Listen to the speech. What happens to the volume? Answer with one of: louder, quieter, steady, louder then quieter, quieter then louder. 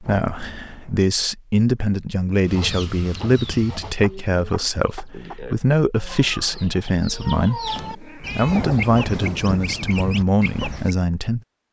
steady.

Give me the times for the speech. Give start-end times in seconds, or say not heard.
0.0-11.4.